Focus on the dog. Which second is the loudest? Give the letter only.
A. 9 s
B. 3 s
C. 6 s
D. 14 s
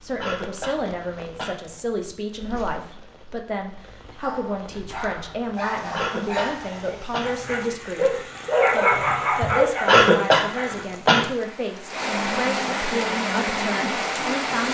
A.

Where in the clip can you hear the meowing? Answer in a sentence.
The meowing can't be heard in this clip.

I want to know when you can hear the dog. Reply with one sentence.
You can hear the dog from 4.2 to 10.8 s.